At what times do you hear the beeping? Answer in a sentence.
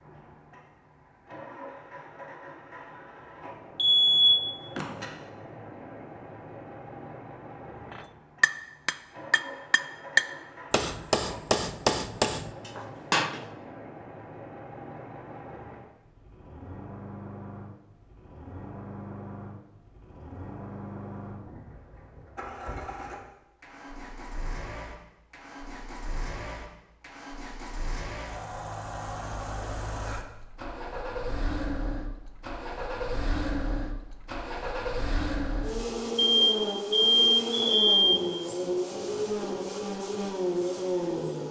You can hear the beeping from 3.8 to 5.0 s and from 36.4 to 38.2 s.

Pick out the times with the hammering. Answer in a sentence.
The hammering can be heard from 7.9 to 13.4 s.